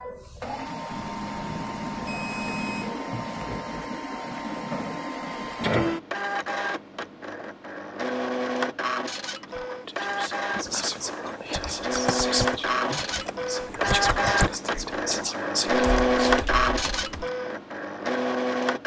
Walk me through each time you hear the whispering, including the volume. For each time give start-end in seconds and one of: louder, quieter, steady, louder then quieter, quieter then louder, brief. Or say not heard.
9.4-16.4 steady.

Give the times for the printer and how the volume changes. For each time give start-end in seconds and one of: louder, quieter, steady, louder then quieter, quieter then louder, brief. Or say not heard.
0.0-18.8 louder.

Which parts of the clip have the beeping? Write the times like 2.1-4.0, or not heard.
0.9-2.9, 9.9-11.6.